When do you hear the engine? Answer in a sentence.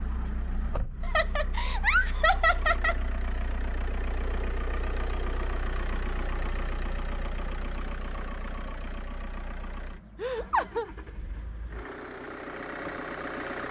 You can hear the engine from 0.0 to 13.6 s.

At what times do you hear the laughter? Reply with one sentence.
You can hear the laughter from 1.0 to 3.0 s and from 10.2 to 10.8 s.